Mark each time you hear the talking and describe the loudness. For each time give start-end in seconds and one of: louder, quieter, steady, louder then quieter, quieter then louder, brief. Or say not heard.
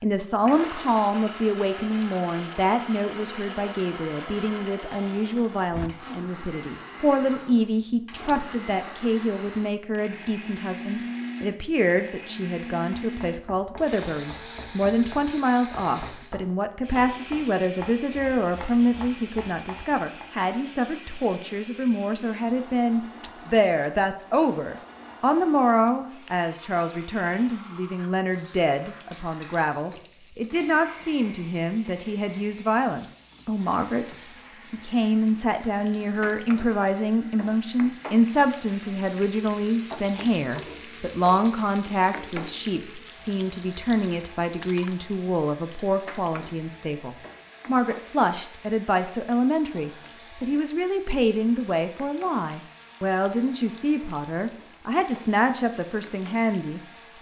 0.0-57.1 steady.